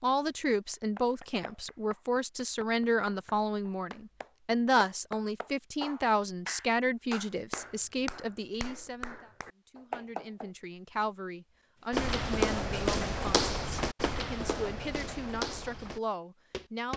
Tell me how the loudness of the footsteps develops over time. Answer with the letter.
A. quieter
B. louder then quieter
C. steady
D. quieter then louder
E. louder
A.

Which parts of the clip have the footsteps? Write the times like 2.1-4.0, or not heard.
11.9-16.9.